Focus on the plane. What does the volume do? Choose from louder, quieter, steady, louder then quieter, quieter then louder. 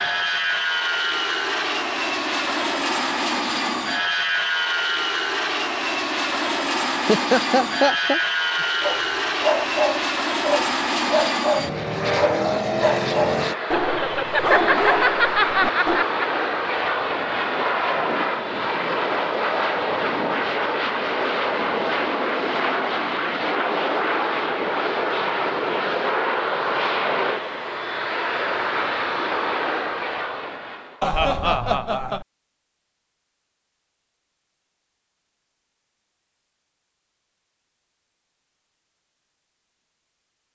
steady.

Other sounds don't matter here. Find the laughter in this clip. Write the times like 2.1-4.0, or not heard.
7.0-8.7, 13.7-16.2, 31.0-32.2.